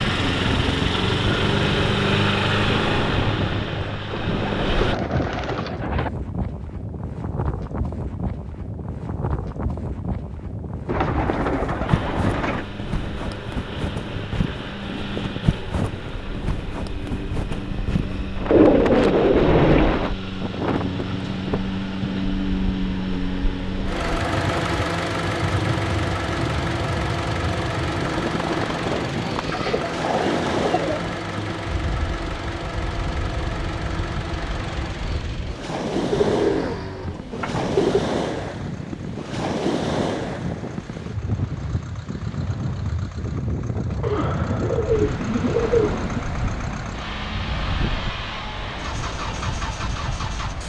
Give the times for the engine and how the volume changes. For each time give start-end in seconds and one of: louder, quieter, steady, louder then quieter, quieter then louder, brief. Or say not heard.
0.0-5.0 quieter
11.8-50.6 louder then quieter.